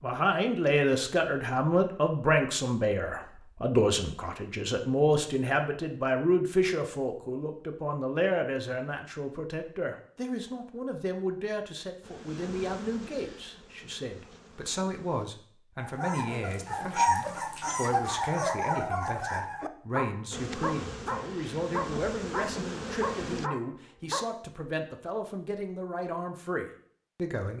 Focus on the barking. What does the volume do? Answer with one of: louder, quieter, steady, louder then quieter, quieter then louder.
quieter.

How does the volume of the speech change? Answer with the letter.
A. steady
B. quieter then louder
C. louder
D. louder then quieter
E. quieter
E.